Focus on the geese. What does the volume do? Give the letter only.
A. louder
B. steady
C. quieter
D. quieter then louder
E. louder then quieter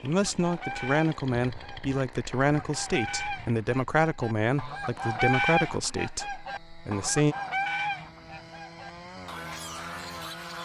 E.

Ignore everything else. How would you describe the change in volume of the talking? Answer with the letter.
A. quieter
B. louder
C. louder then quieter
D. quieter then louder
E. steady
A.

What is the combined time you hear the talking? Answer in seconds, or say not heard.
7 s.